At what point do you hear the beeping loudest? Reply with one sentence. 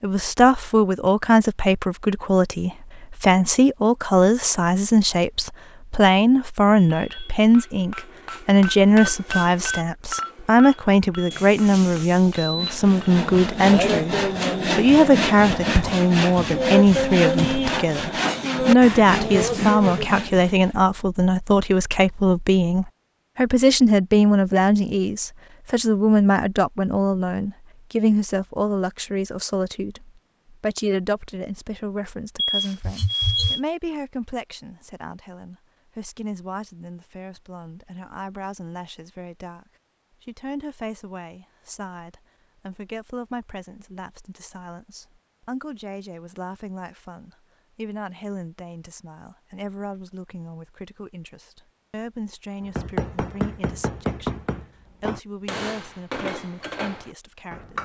The loudest moment of the beeping is at 33 seconds.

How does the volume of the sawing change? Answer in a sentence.
The volume of the sawing stays about the same.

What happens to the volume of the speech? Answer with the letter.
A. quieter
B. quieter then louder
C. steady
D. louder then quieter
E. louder
A.